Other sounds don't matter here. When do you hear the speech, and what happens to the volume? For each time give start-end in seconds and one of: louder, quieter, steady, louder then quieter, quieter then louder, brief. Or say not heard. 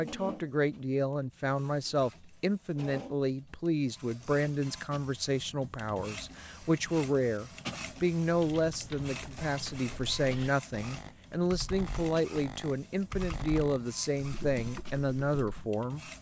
0.0-16.1 steady.